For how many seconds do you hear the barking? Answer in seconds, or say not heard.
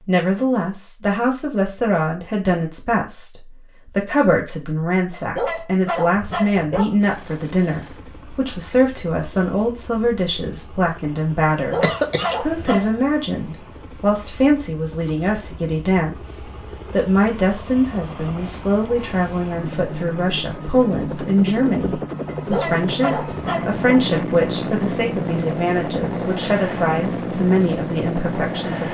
5 s.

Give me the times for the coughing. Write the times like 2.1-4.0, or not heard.
11.8-12.8.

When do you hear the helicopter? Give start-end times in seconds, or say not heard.
7.0-28.8.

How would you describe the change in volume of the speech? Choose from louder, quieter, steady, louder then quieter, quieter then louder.
steady.